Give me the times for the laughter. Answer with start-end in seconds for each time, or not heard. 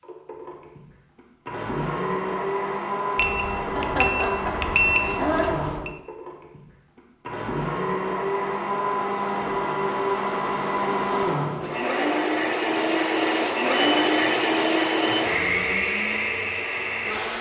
3.8-5.5.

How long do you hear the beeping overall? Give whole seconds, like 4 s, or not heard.
4 s.